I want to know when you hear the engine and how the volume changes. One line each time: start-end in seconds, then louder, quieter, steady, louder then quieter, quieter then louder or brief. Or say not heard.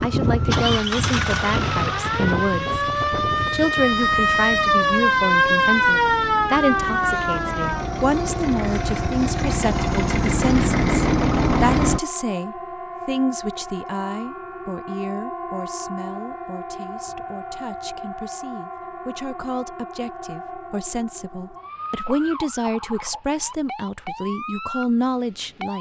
0.0-12.0 quieter then louder.